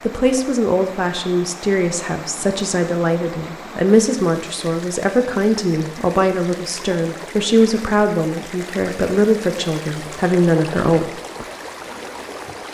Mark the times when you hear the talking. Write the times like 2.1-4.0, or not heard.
0.0-11.1.